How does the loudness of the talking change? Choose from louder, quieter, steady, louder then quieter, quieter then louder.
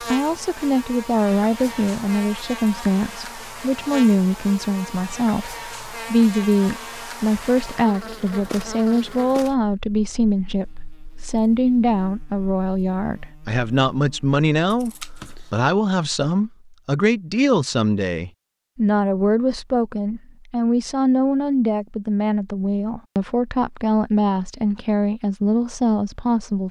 steady.